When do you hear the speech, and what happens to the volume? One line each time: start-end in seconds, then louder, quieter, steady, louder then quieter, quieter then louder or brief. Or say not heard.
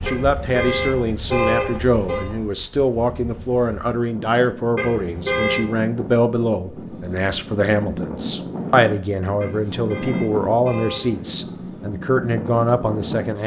0.1-13.4 steady.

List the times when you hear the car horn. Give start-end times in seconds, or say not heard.
0.1-2.2, 4.8-5.7, 9.4-11.3.